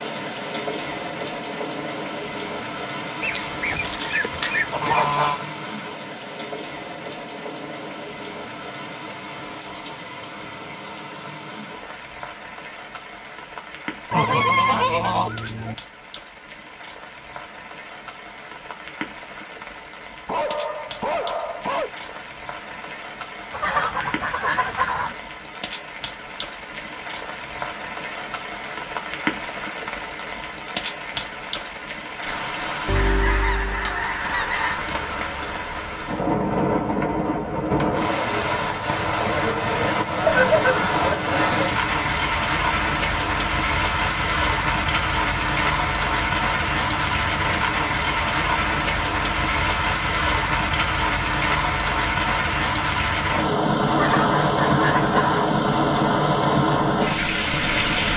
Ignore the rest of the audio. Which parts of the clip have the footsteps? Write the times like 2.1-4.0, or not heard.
not heard.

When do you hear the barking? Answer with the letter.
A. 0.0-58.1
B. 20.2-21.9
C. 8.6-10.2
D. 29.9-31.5
B.